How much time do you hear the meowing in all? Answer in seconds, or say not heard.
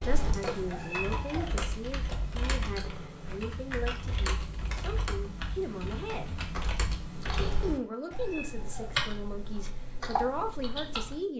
3 s.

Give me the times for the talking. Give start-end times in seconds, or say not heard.
0.0-6.3, 7.6-11.3.